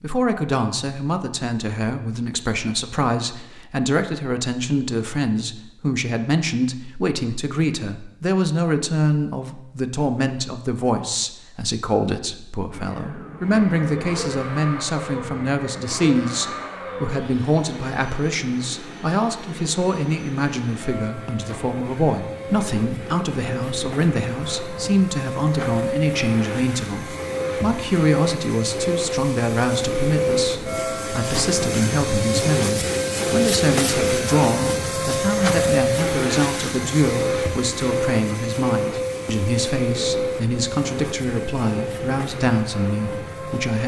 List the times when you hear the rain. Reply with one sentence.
You can't hear the rain here.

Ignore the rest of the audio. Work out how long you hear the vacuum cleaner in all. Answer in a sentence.
The vacuum cleaner can be heard for 31 seconds in total.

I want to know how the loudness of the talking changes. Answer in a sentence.
The volume of the talking stays about the same.